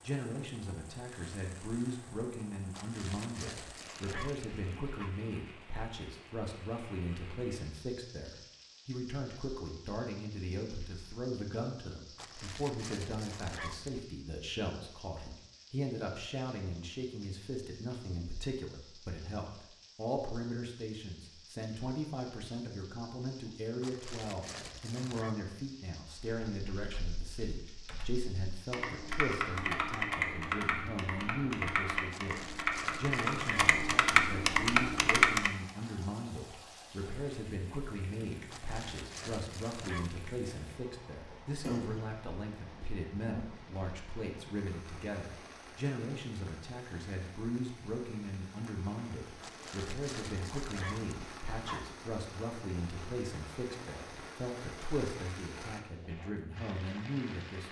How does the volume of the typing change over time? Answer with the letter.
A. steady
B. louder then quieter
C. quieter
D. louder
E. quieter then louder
D.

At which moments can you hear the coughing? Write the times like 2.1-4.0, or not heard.
41.3-42.2.